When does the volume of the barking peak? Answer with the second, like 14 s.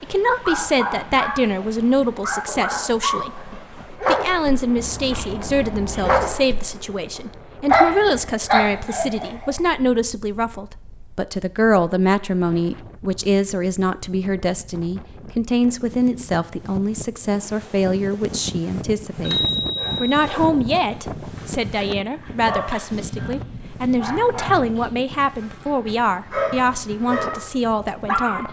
8 s.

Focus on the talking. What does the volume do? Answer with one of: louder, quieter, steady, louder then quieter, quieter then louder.
steady.